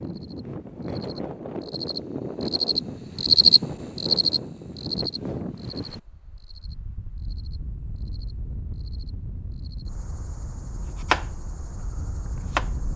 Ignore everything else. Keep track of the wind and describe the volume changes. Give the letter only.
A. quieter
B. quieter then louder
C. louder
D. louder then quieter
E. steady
A.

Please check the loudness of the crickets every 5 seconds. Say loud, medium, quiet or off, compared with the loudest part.
loud, quiet, quiet.